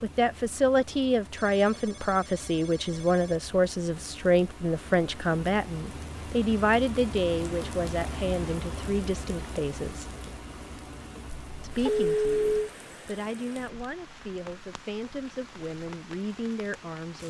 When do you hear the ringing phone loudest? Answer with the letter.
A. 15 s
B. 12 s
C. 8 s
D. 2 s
B.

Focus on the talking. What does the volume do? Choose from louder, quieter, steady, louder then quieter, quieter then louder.
quieter.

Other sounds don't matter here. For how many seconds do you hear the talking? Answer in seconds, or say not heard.
16 s.